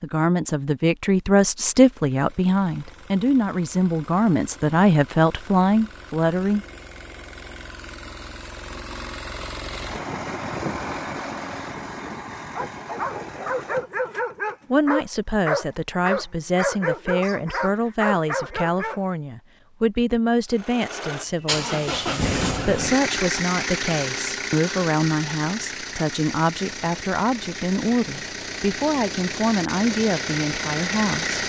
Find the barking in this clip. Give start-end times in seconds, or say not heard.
12.6-19.0.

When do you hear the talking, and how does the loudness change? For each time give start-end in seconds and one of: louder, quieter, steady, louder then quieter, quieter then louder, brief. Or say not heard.
0.0-6.7 steady
14.7-31.4 steady.